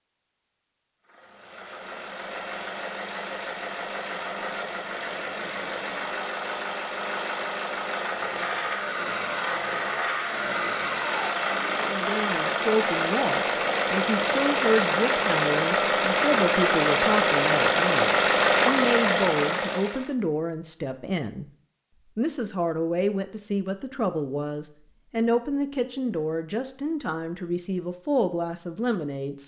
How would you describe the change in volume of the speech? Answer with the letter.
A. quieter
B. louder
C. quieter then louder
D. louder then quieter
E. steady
E.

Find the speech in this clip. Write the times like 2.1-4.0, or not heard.
11.8-21.4, 22.1-29.4.